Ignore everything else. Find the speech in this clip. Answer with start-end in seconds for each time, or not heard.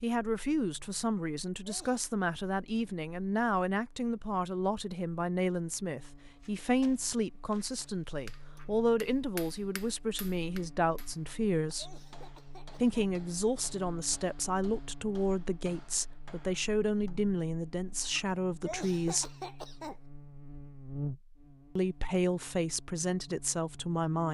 0.0-11.9, 12.8-19.3, 21.8-24.2.